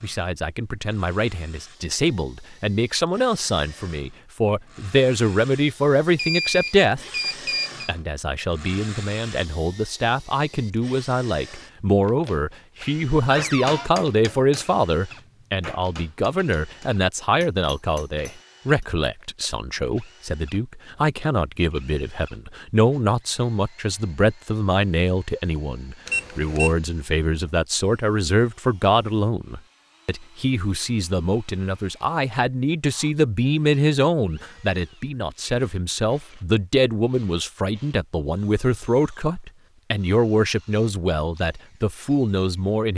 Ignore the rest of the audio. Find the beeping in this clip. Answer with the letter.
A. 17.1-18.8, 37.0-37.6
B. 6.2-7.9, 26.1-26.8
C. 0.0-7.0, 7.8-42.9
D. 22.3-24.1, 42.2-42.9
B.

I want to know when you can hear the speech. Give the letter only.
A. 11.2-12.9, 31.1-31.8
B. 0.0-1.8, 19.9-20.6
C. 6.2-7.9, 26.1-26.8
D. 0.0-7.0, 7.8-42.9
D.